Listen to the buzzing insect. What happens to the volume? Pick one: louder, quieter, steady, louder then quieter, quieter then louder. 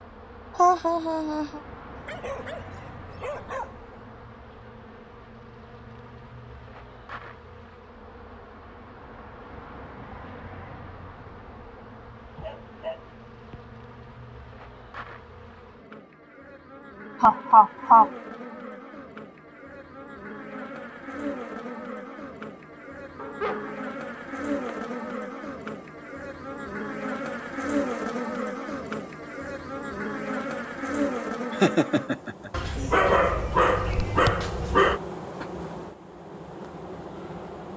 louder.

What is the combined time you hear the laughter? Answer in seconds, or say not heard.
3 s.